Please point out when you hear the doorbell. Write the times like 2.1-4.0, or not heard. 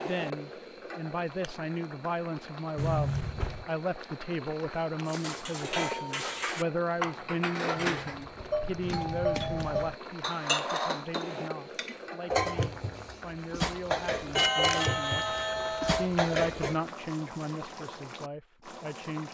2.8-3.7, 7.8-9.9, 14.3-16.1.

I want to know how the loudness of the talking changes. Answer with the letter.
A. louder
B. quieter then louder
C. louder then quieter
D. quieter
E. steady
B.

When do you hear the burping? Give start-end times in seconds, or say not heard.
not heard.